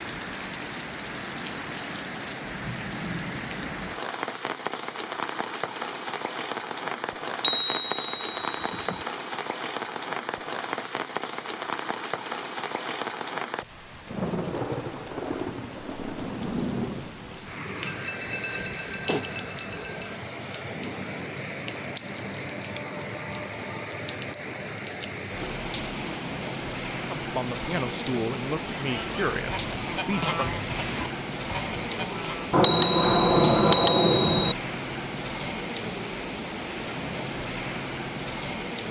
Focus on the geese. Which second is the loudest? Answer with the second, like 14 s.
30 s.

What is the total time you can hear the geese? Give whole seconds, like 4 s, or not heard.
4 s.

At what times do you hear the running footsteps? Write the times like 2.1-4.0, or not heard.
not heard.